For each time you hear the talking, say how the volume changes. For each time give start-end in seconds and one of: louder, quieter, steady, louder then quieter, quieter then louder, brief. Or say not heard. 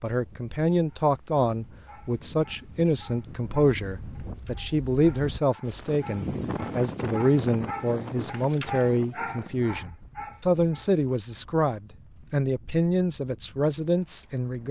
0.0-14.6 steady.